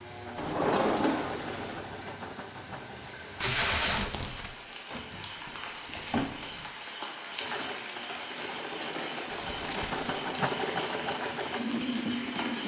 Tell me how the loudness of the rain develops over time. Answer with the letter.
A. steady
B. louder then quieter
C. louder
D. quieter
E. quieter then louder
C.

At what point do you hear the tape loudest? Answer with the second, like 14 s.
4 s.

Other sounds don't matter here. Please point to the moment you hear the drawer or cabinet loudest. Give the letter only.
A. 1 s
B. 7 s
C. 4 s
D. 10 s
A.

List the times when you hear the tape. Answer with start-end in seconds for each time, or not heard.
3.4-4.5, 9.6-10.1.